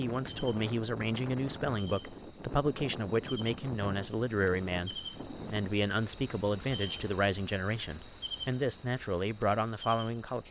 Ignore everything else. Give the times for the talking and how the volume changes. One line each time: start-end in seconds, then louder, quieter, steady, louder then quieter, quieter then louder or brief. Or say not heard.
0.0-10.4 steady.